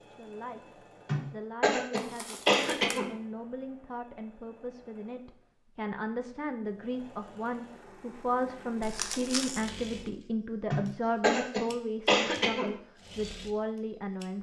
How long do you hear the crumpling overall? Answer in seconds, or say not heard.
2 s.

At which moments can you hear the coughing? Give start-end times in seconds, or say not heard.
1.1-3.1, 10.7-12.7.